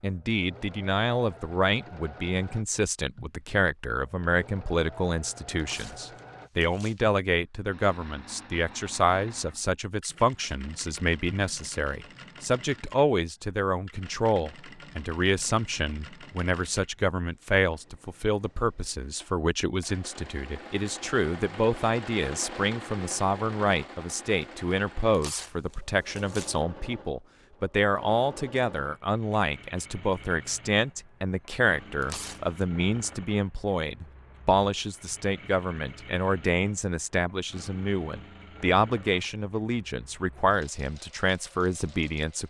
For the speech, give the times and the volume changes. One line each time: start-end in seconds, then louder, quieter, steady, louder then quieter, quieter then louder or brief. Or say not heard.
0.0-42.4 steady.